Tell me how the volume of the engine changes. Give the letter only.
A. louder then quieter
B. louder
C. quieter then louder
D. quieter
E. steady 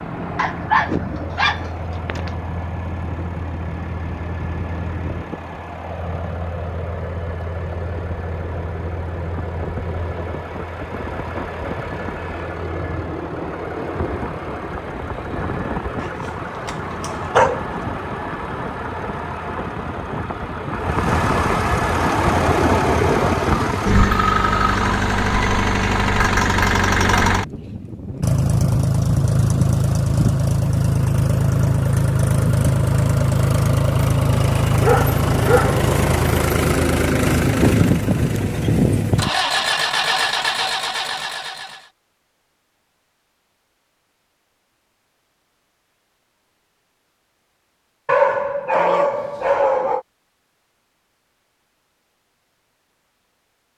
B.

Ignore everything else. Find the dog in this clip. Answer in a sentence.
You can hear the dog from 0.3 to 2.3 s, from 16.0 to 17.8 s, from 34.8 to 35.8 s and from 48.0 to 50.0 s.